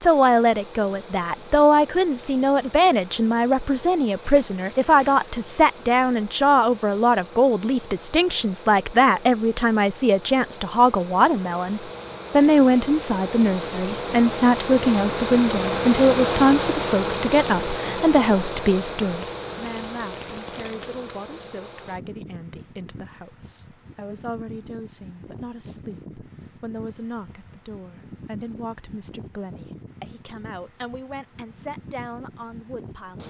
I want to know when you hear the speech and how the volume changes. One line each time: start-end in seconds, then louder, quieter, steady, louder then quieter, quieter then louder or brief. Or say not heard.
0.0-33.2 quieter.